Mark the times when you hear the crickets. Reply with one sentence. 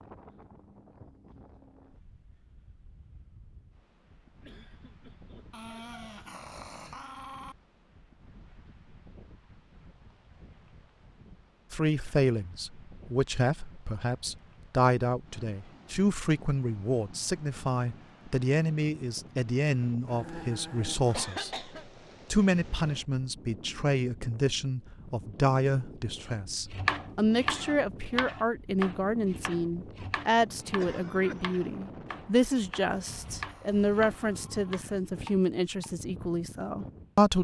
You can't hear the crickets here.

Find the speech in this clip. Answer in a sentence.
The speech can be heard from 11.7 to 21.7 s and from 22.3 to 37.3 s.